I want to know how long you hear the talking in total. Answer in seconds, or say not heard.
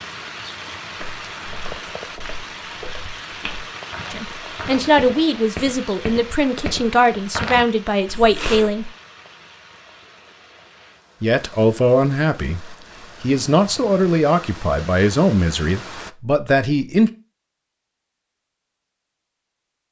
11 s.